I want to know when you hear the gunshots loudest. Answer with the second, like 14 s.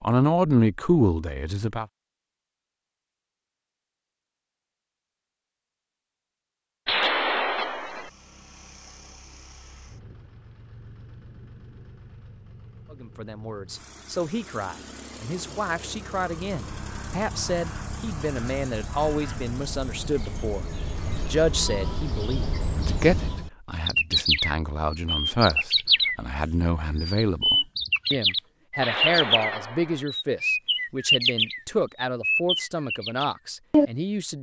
7 s.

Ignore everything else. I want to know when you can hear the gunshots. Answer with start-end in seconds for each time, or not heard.
6.8-8.1, 28.8-30.1.